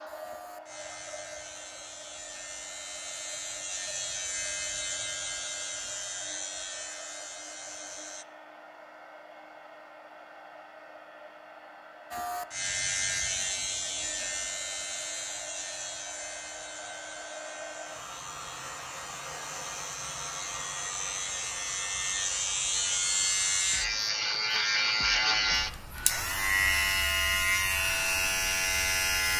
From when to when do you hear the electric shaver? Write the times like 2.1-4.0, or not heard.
0.0-8.2, 12.1-29.3.